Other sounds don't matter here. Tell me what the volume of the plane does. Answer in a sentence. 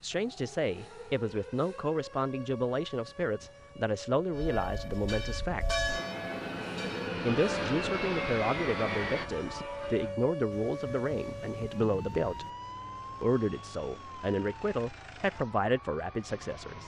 The loudness of the plane goes up.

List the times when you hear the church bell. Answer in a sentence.
You can hear the church bell from 4.3 to 10.2 s.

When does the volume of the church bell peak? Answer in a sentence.
The volume of the church bell peaks at 6 seconds.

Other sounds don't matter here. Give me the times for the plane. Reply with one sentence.
You can hear the plane from 4.3 to 9.3 s.